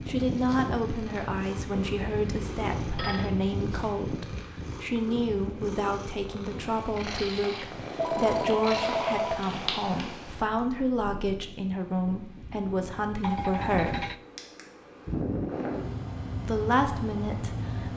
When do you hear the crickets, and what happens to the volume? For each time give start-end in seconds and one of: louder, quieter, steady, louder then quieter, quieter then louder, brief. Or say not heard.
not heard.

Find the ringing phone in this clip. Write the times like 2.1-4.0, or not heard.
2.2-3.3, 8.0-9.4, 13.2-14.2.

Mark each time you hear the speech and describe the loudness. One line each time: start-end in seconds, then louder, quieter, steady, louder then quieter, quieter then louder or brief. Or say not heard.
0.1-14.1 steady
16.4-17.9 brief.